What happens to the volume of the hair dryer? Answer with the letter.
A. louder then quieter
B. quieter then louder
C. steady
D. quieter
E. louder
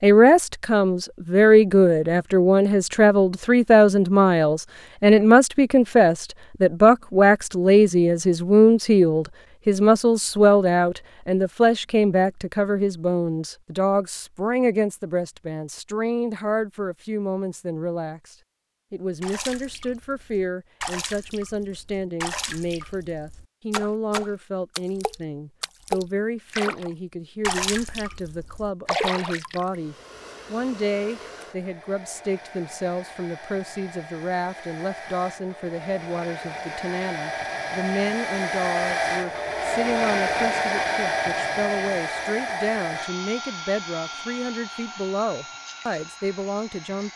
A.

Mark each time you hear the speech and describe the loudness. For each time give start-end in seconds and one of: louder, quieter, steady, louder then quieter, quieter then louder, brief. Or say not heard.
0.0-47.1 quieter.